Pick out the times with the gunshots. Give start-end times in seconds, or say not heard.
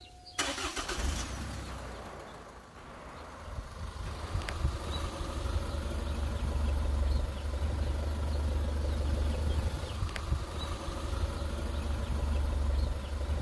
0.8-4.7.